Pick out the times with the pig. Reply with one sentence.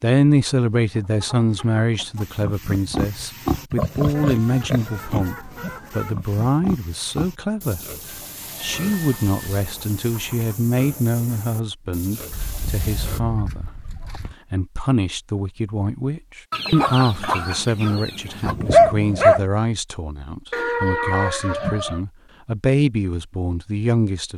The pig can be heard from 2.1 to 13.2 s.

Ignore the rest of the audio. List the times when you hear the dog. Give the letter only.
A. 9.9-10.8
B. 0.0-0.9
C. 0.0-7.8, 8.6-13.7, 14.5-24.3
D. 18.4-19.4
D.